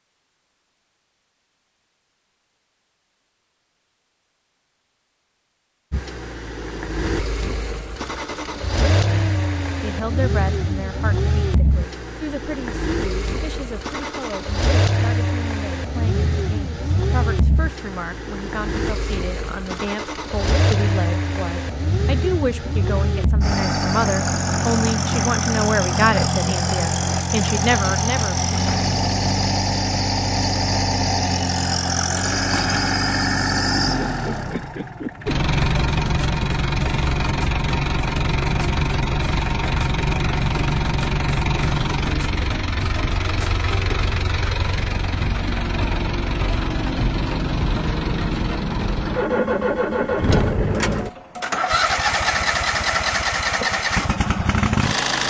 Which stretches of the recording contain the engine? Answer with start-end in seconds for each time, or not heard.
5.9-55.2.